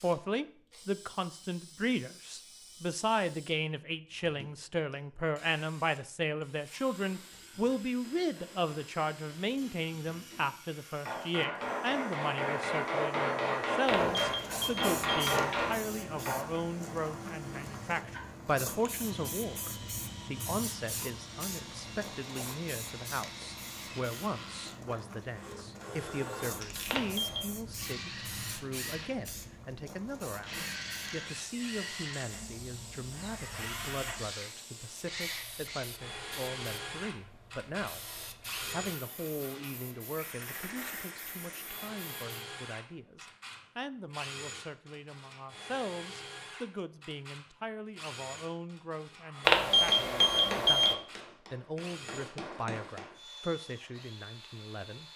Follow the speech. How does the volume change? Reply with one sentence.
The volume of the speech goes down.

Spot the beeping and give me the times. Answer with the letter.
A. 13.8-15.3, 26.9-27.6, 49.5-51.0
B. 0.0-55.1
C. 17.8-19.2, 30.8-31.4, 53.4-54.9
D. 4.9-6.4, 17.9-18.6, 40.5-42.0
A.